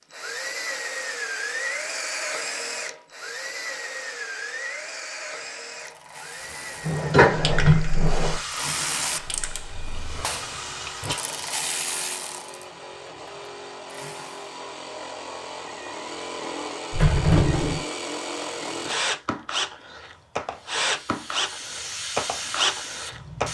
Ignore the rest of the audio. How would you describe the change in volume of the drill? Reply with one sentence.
The loudness of the drill goes down, then up.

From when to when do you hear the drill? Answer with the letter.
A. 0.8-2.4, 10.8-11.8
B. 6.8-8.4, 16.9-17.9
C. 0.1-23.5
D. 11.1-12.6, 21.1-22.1
C.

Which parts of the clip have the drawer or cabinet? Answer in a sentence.
The drawer or cabinet can be heard from 6.8 to 8.4 s and from 16.9 to 17.9 s.